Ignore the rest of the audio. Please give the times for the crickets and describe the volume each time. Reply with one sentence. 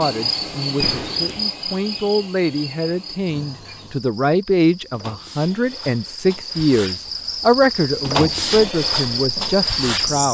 The crickets can be heard from 0.0 to 10.2 s, getting quieter then louder.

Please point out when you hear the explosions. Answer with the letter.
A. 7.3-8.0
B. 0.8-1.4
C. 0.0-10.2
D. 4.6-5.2
B.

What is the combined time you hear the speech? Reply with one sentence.
The speech can be heard for 10 seconds in total.